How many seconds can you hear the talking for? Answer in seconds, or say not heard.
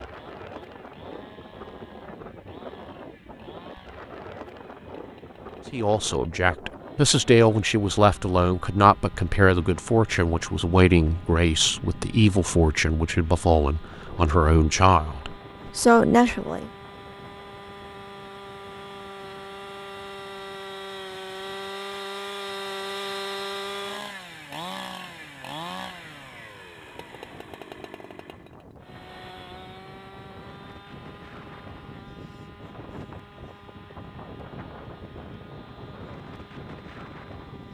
11 s.